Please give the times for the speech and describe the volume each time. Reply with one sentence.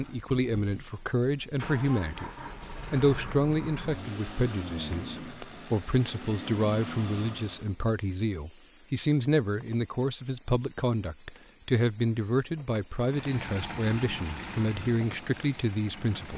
The speech can be heard briefly from 0.0 to 2.3 s; and from 2.9 to 16.3 s, at a steady volume.